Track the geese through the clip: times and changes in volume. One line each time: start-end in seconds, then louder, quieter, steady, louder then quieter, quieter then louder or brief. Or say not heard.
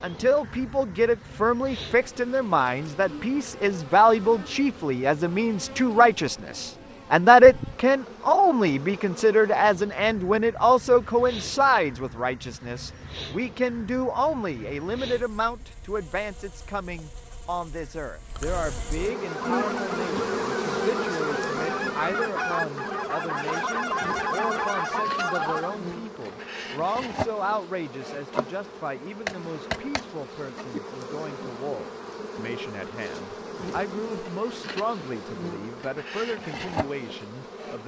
19.2-25.8 louder.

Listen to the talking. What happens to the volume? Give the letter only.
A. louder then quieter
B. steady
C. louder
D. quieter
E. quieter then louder
D.